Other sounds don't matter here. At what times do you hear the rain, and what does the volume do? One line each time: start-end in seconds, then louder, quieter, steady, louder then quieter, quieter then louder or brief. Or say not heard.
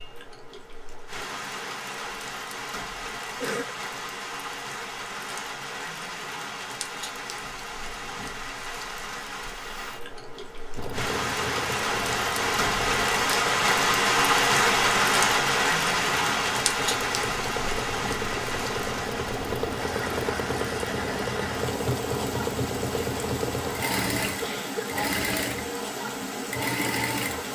0.0-27.4 louder then quieter.